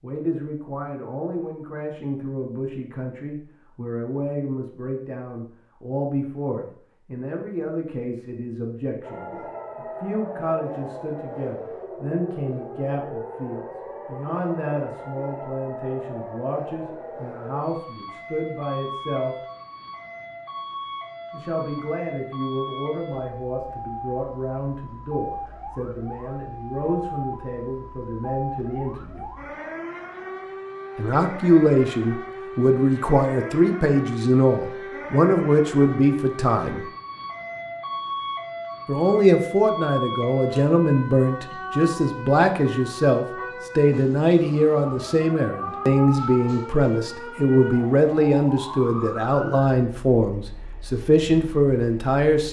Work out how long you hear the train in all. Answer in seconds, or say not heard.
not heard.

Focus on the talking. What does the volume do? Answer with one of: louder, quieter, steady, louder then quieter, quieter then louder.
louder.